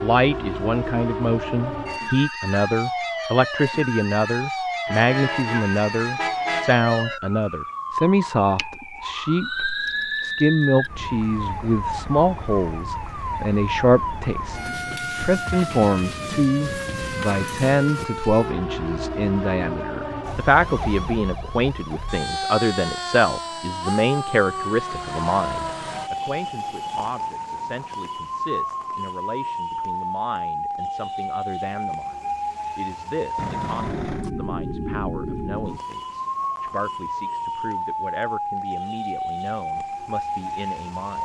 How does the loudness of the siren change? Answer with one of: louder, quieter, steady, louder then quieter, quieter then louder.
steady.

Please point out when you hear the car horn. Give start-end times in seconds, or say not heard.
4.8-6.7, 33.4-34.3.